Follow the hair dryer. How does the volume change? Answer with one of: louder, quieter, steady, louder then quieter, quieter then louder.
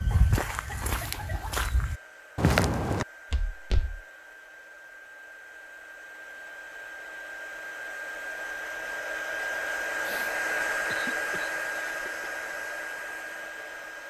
louder.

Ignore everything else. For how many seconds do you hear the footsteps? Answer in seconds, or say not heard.
4 s.